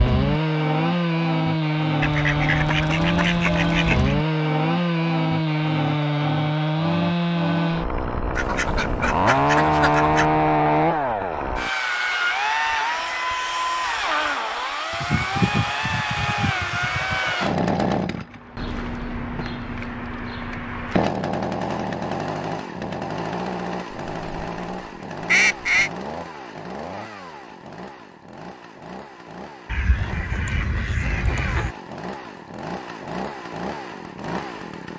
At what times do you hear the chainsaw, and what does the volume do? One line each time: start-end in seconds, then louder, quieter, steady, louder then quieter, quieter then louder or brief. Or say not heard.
0.0-34.9 quieter.